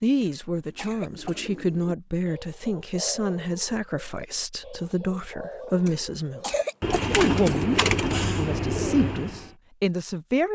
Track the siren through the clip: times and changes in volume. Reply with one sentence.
The siren can't be heard in this clip.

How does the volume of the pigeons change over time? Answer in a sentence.
The loudness of the pigeons goes up.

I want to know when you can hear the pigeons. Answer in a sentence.
The pigeons can be heard from 0.8 to 9.5 s.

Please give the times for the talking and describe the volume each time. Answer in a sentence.
The talking can be heard from 0.0 to 7.8 s, at a steady volume; and briefly from 8.3 to 10.5 s.